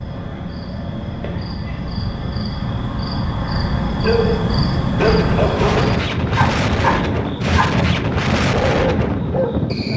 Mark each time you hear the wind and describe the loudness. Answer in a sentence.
The wind can be heard from 5.0 to 9.9 s, at a steady volume.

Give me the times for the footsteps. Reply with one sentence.
The footsteps can't be heard in this clip.